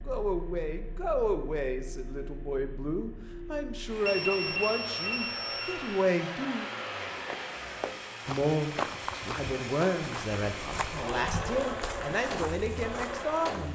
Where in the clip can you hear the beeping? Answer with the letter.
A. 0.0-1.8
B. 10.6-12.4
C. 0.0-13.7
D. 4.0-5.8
D.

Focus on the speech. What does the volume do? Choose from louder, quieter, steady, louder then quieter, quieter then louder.
steady.